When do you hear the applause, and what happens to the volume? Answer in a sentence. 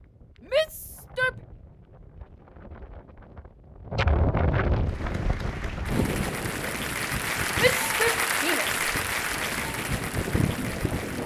You can hear the applause from 4.8 to 11.2 s, getting louder then quieter.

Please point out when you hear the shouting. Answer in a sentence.
You can hear the shouting from 0.4 to 1.4 s and from 7.5 to 8.8 s.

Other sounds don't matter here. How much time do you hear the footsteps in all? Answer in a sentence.
You can't hear the footsteps here.